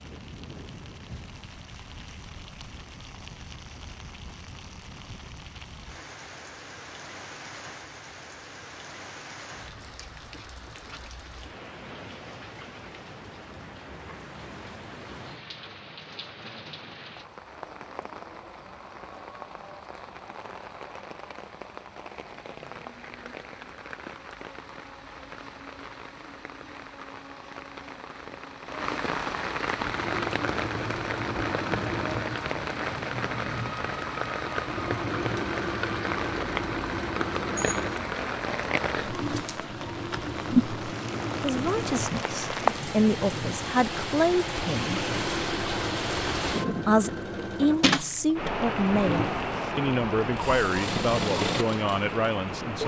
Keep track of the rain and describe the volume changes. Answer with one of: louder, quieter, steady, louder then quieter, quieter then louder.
louder.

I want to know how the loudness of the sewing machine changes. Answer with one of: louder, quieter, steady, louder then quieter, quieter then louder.
steady.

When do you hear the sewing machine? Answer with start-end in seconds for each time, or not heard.
29.7-52.8.